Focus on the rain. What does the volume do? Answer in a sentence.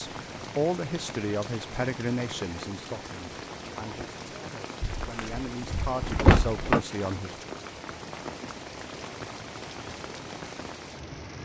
The loudness of the rain stays about the same.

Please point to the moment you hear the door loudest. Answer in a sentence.
The volume of the door peaks at 6 seconds.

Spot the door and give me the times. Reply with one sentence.
The door can be heard from 4.8 to 6.8 s.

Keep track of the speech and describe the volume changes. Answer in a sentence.
The volume of the speech goes down, then up.